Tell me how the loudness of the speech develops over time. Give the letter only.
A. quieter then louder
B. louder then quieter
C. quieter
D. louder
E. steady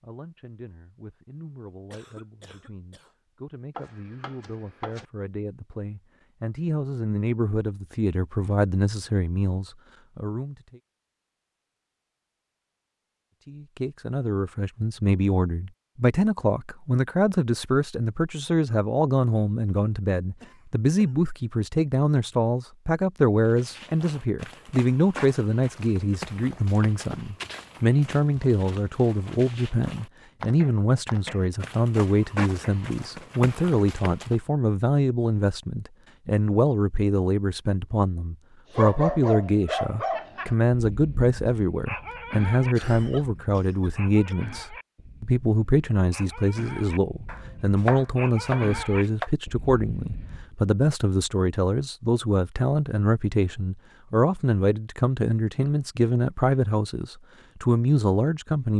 D.